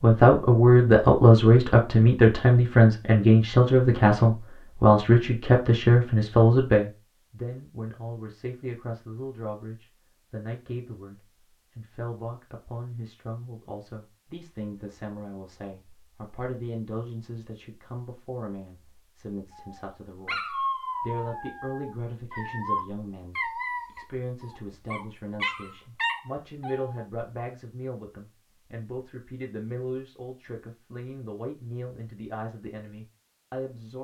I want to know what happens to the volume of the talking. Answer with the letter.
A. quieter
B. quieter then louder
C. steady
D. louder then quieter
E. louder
A.